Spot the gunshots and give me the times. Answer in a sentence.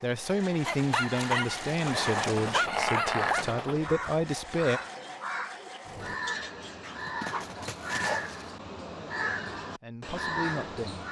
You can hear the gunshots from 1.8 to 3.8 s.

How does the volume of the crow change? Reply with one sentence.
The volume of the crow goes up.